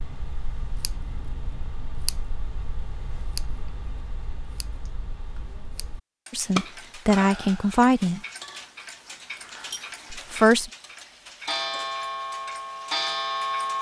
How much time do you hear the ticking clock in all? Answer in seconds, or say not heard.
14 s.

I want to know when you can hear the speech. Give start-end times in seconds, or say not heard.
6.3-8.2, 10.1-10.7.